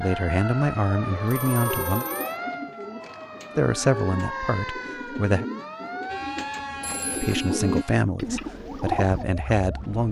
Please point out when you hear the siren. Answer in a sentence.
You can hear the siren from 0.0 to 10.0 s.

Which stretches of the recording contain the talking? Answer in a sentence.
You can hear the talking from 0.0 to 2.0 s, from 3.5 to 5.5 s and from 7.1 to 10.0 s.